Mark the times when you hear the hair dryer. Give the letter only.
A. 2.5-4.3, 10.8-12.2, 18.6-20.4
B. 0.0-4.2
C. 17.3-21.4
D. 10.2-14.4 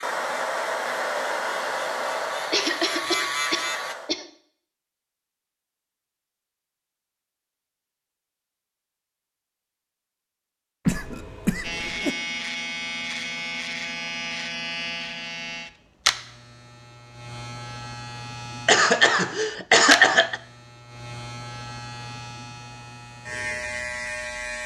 B.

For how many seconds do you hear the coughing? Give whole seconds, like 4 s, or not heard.
5 s.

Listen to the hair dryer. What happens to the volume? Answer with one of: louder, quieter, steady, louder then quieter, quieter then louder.
quieter.